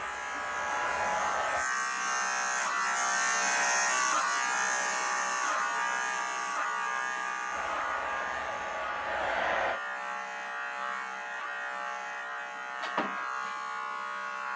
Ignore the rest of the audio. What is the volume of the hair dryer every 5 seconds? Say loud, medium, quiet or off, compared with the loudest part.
loud, loud, off.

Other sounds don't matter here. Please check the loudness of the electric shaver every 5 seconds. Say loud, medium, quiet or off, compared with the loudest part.
loud, loud, medium.